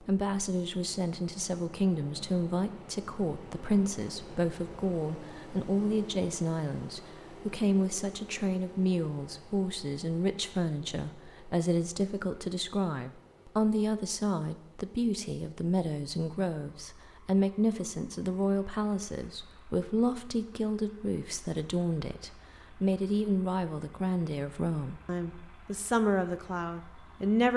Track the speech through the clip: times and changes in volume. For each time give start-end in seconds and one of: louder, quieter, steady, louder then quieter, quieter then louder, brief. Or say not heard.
0.0-27.5 steady.